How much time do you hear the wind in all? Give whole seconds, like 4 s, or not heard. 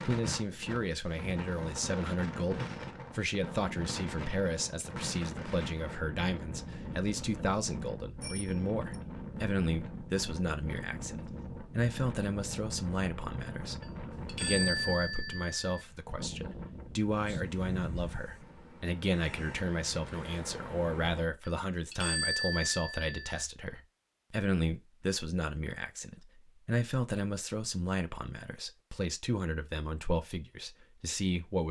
21 s.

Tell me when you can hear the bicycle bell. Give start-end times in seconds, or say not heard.
8.2-9.0, 13.8-15.8, 21.4-23.4.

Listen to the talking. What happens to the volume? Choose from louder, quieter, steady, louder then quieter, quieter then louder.
steady.